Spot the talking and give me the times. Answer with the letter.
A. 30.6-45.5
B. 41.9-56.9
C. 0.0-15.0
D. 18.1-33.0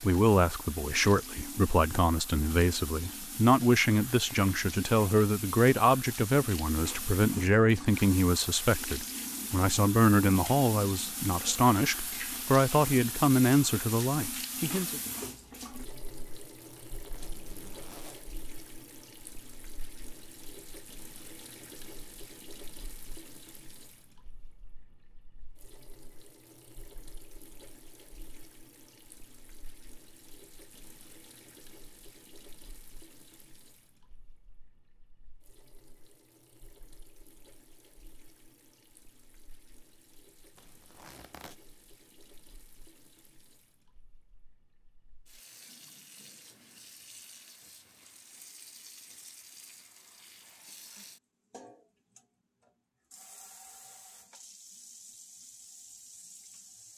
C.